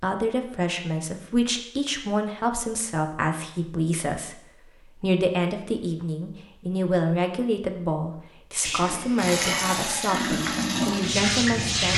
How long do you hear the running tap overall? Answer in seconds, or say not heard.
3 s.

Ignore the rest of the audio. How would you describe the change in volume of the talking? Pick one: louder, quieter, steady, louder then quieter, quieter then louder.
steady.